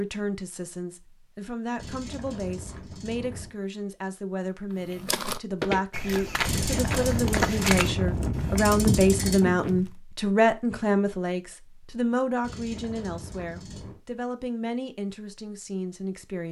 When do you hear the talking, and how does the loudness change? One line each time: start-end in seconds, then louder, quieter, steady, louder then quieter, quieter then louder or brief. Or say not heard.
0.0-16.4 louder then quieter.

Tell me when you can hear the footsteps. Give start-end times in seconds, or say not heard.
4.9-9.8.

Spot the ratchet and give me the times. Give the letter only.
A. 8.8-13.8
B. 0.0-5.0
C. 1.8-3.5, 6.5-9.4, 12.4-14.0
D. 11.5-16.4
C.